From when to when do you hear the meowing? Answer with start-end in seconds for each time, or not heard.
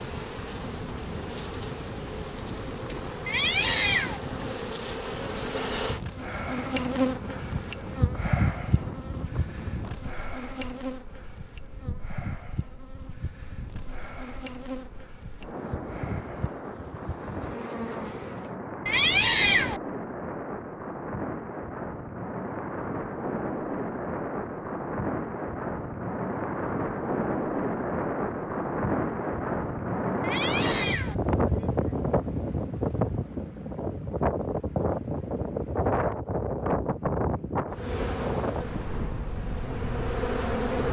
3.2-4.2, 18.9-19.8, 30.2-31.1.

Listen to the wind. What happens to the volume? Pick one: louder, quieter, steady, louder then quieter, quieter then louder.
louder.